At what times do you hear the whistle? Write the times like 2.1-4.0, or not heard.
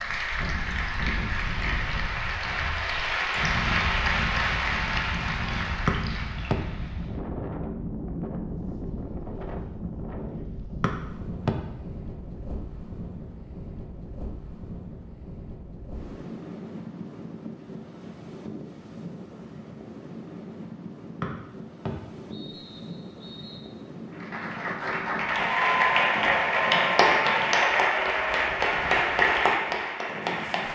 5.8-6.5, 10.8-11.6, 21.2-23.6.